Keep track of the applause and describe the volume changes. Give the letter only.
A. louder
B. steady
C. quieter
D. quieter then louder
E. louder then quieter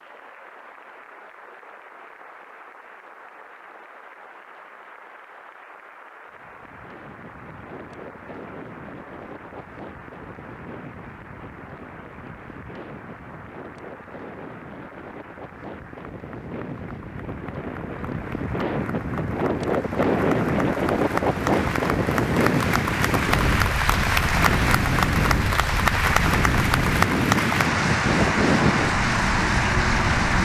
A.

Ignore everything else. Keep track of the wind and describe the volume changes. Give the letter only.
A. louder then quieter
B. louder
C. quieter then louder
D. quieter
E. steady
B.